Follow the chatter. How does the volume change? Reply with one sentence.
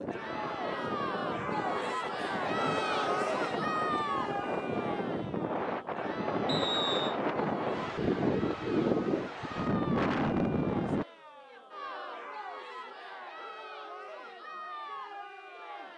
The volume of the chatter goes down.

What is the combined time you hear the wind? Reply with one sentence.
The wind can be heard for 11 seconds in total.